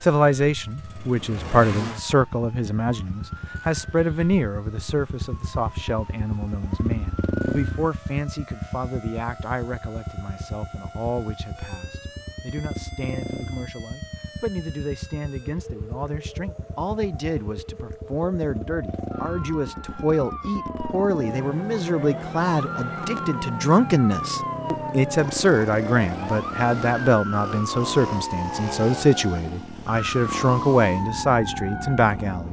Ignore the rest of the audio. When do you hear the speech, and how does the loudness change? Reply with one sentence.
The speech can be heard from 0.0 to 32.4 s, getting quieter then louder.